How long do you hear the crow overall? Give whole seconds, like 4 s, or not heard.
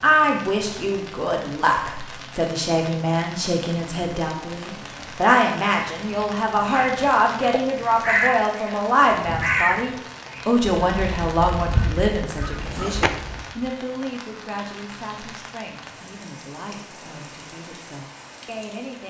7 s.